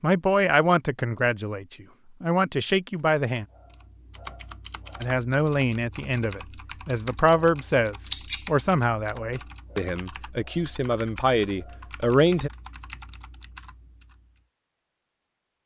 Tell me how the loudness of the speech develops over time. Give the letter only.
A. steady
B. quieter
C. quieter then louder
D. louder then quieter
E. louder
A.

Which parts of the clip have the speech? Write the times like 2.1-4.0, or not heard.
0.0-3.5, 5.0-12.5.